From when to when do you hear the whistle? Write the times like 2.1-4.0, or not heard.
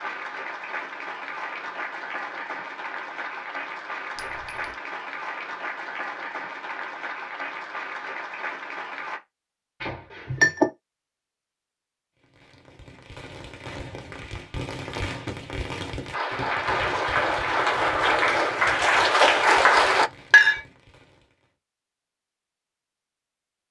not heard.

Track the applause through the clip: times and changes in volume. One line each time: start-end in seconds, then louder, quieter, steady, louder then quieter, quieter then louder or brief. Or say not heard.
0.0-9.2 steady
16.1-20.1 louder.